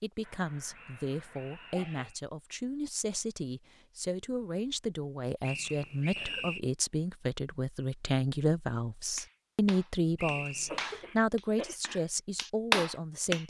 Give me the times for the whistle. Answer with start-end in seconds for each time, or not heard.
0.7-2.2, 5.4-6.6, 10.2-10.9.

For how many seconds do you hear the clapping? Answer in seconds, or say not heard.
4 s.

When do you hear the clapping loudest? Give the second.
13 s.